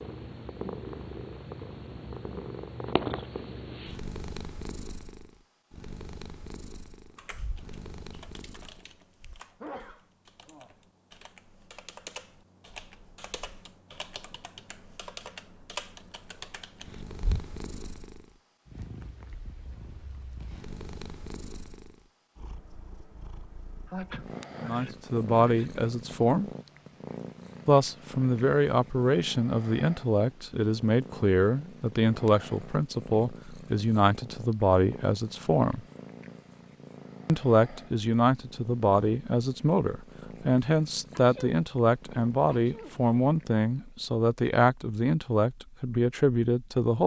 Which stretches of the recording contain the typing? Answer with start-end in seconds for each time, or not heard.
7.2-17.4.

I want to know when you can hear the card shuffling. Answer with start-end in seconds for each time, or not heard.
not heard.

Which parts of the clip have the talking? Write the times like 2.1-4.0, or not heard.
24.6-26.5, 27.6-35.8, 37.2-47.0.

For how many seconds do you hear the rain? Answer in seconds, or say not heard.
not heard.